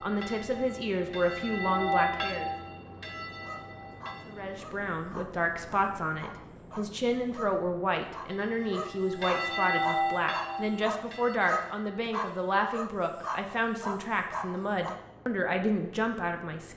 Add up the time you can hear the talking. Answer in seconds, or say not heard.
15 s.